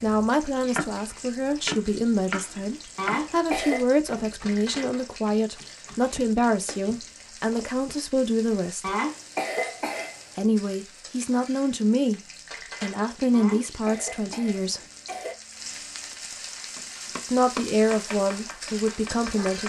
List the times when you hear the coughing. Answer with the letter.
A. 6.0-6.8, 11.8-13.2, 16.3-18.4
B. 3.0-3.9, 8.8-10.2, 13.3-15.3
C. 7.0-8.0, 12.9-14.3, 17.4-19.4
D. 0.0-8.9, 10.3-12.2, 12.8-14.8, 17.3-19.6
B.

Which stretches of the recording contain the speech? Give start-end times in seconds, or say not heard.
0.0-8.9, 10.3-12.2, 12.8-14.8, 17.3-19.6.